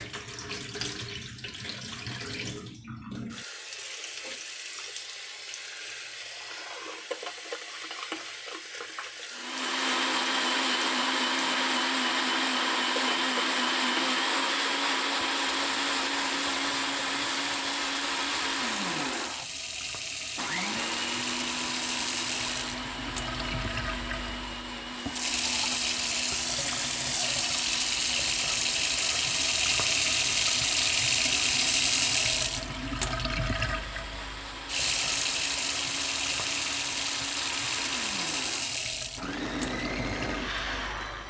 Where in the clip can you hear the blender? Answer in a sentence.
The blender can be heard from 9.3 to 41.2 s.